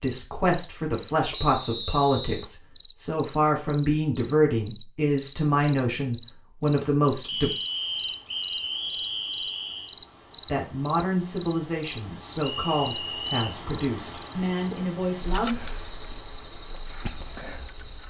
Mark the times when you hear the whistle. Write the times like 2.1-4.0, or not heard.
1.3-2.5, 7.2-9.9, 12.4-13.6.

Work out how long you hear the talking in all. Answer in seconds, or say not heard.
13 s.